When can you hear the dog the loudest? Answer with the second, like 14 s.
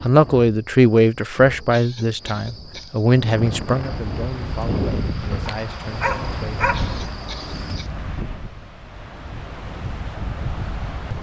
7 s.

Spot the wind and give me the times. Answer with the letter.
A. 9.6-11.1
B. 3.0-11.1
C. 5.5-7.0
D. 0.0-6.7
B.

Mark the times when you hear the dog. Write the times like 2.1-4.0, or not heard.
5.5-7.0.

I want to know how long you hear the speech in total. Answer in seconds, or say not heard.
7 s.